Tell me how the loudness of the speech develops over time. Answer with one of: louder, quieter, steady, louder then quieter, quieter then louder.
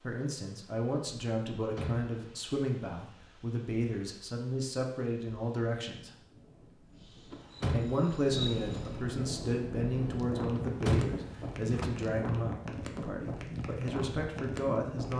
steady.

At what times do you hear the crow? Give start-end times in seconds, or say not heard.
not heard.